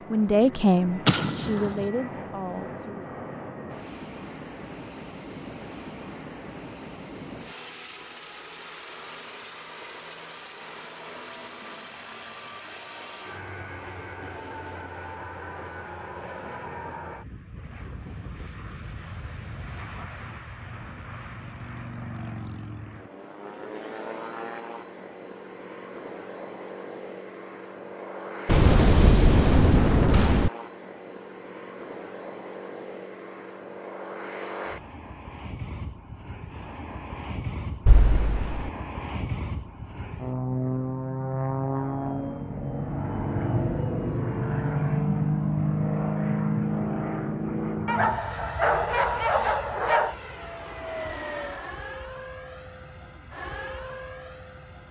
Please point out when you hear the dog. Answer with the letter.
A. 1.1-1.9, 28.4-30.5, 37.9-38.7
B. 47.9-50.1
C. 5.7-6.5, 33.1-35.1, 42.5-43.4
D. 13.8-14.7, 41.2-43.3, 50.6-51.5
B.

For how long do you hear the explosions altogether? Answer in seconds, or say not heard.
4 s.